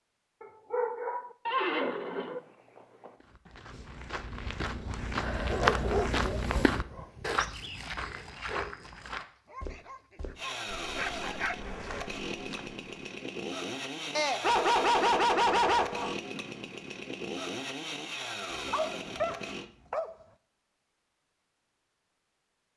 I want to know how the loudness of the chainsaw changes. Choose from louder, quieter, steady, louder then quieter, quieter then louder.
steady.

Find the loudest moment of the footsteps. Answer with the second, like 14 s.
6 s.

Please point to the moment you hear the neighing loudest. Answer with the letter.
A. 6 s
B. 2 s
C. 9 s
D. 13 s
B.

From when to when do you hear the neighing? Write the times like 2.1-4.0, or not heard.
1.4-3.1.